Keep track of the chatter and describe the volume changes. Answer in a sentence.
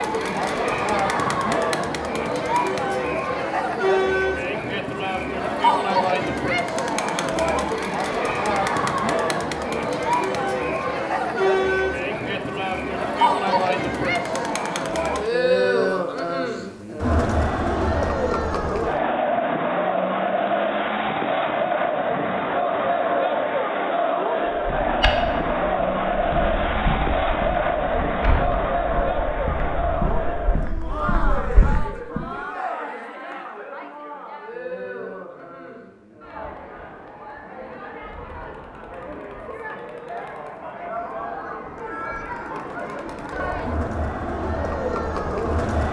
The volume of the chatter goes down.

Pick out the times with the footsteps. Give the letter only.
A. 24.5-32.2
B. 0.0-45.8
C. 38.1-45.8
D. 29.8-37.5
A.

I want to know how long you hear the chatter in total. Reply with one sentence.
You can hear the chatter for 46 seconds altogether.